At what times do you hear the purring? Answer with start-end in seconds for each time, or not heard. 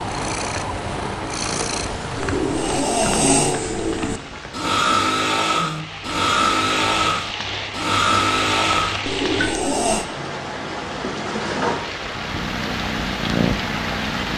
0.0-2.9, 11.5-14.3.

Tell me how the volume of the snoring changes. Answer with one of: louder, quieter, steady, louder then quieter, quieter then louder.
steady.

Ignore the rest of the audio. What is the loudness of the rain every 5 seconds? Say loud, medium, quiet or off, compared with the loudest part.
medium, loud, loud.